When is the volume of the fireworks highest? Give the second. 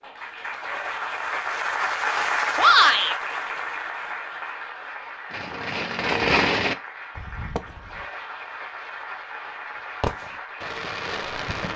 6 s.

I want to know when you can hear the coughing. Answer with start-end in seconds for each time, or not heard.
not heard.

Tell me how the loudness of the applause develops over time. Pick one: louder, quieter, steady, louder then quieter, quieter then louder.
quieter.